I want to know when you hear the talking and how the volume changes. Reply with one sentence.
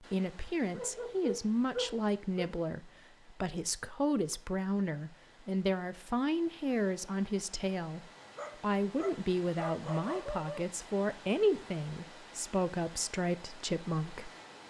You can hear the talking from 0.0 to 14.3 s, at a steady volume.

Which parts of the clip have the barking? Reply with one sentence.
You can hear the barking from 0.7 to 2.5 s and from 8.3 to 10.7 s.